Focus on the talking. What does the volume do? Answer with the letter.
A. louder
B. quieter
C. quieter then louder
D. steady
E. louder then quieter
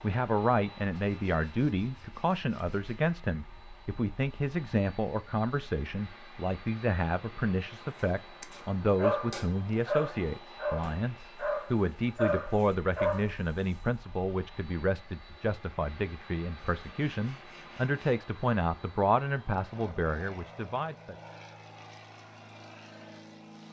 D.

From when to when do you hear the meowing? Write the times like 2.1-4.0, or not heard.
not heard.